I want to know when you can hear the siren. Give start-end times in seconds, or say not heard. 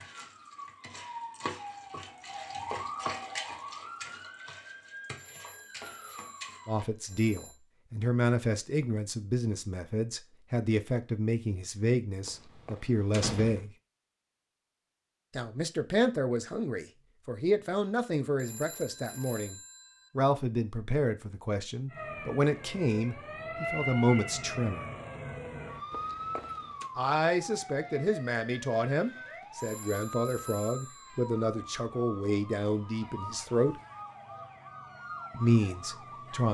0.0-6.8, 21.9-36.4.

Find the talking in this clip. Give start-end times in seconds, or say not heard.
6.7-13.7, 15.3-19.6, 20.1-24.9, 26.9-33.8, 35.3-36.4.